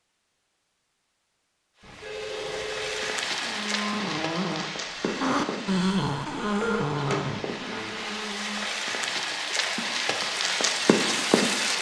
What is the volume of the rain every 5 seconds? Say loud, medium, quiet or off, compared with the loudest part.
medium, medium, loud.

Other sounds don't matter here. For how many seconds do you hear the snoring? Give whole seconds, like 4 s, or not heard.
5 s.